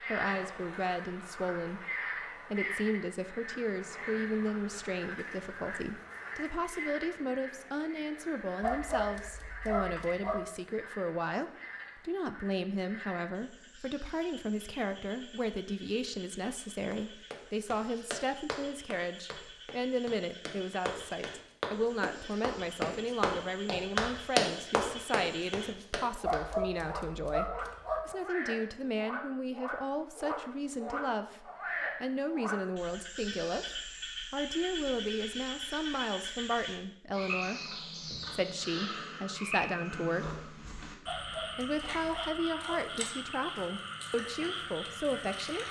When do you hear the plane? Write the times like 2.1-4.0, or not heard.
not heard.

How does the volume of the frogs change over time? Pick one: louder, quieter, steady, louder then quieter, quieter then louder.
quieter then louder.